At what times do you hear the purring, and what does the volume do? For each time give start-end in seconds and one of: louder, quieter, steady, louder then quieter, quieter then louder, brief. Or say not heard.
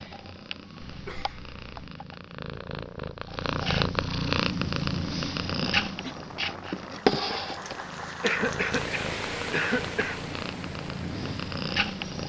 0.0-12.2 louder then quieter.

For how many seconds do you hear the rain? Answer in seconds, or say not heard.
8 s.